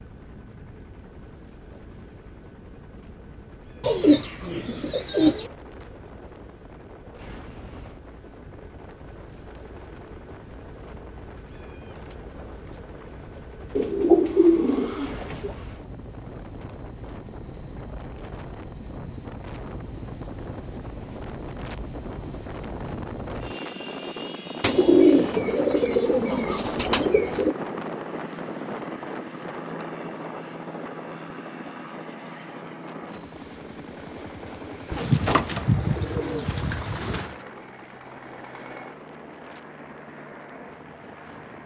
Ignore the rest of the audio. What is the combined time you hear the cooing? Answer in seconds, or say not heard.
9 s.